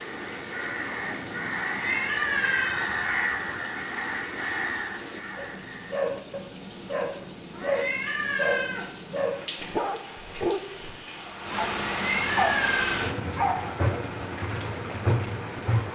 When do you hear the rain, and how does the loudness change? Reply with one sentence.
You can hear the rain from 0.0 to 15.9 s, getting louder.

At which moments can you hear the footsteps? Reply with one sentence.
You can't hear the footsteps here.